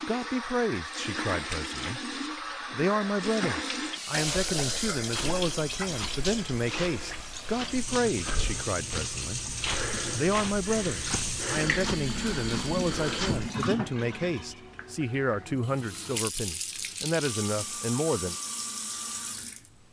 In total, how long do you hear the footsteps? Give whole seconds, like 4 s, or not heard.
9 s.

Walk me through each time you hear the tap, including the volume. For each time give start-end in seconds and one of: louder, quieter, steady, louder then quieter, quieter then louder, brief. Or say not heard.
0.0-19.8 steady.